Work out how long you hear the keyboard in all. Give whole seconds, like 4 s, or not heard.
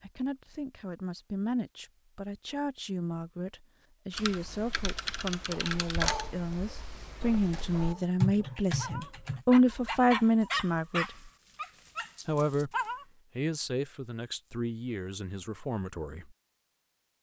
5 s.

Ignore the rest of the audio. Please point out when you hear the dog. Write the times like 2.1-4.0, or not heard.
5.5-13.1.